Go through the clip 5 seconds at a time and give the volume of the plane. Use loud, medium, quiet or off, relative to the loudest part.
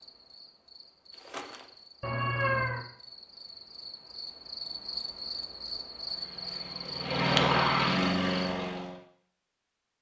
off, loud.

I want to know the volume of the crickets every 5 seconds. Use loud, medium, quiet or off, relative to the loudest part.
medium, loud.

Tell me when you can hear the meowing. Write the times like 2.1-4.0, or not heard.
2.0-2.9.